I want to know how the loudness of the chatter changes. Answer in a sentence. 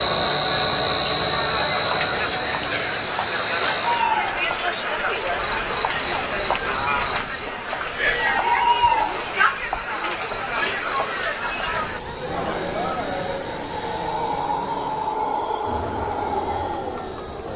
The volume of the chatter goes down.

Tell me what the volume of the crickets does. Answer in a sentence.
The volume of the crickets stays about the same.